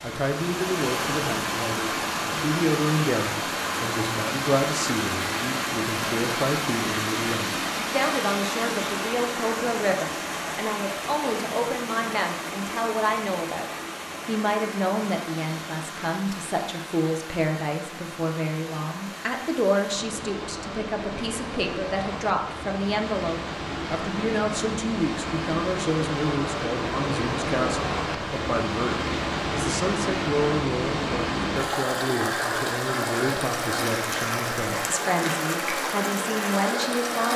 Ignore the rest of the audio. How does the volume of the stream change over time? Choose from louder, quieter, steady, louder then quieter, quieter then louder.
quieter then louder.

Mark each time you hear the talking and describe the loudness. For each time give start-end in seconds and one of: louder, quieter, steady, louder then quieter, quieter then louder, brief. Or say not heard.
0.0-37.3 steady.